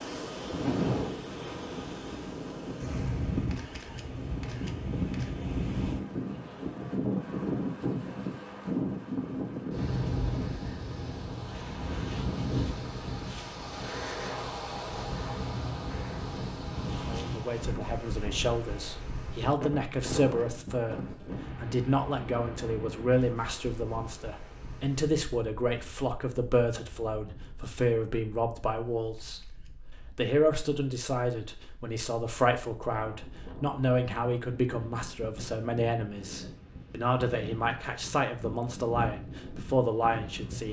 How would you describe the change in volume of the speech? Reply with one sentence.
The volume of the speech stays about the same.